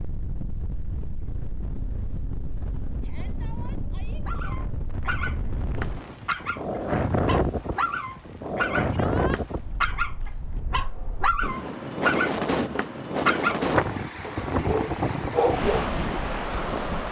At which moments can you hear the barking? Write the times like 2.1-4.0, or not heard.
4.2-15.9.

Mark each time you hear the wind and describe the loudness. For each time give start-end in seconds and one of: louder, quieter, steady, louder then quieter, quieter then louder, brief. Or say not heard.
0.0-17.0 louder.